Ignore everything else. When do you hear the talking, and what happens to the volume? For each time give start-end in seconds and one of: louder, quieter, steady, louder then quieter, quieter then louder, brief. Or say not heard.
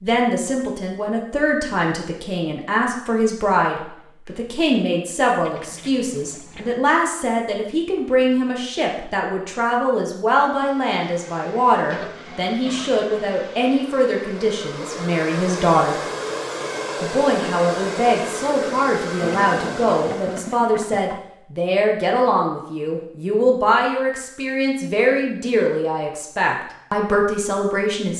0.0-16.0 steady
17.0-28.1 steady.